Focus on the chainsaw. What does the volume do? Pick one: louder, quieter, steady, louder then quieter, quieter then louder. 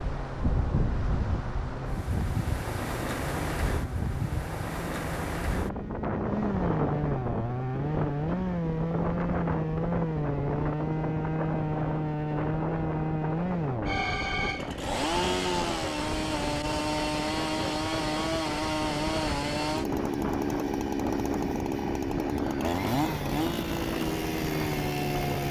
louder.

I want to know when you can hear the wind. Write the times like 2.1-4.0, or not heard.
0.0-25.4.